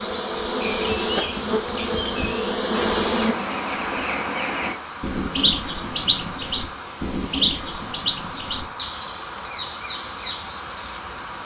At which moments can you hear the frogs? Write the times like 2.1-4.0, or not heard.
not heard.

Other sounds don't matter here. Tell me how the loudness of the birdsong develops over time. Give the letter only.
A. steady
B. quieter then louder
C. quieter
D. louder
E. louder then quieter
E.